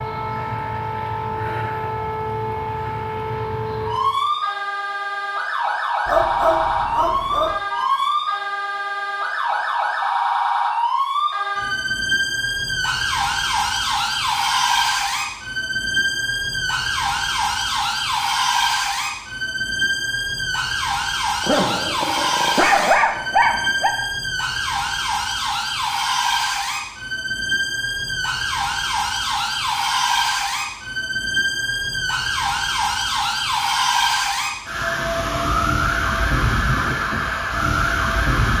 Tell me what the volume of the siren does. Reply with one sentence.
The loudness of the siren stays about the same.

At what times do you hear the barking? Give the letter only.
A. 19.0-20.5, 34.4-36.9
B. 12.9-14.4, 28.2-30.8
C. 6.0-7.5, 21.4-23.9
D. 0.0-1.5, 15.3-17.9
C.